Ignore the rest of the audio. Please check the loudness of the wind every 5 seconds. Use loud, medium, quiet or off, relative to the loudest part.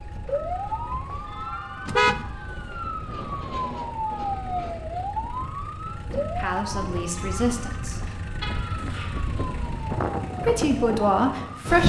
quiet, medium, loud.